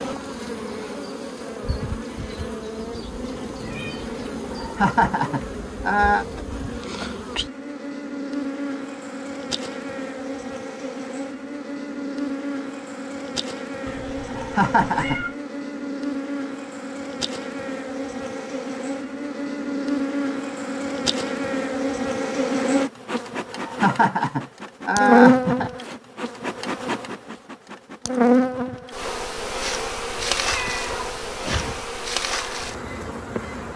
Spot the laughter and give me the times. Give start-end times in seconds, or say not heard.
4.5-6.2, 14.3-15.2, 23.6-25.7.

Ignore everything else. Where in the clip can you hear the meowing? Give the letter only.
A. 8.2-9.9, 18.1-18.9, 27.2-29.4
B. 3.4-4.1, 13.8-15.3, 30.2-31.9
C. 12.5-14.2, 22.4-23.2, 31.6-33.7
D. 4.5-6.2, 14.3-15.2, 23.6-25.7
B.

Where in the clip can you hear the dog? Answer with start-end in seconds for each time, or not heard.
not heard.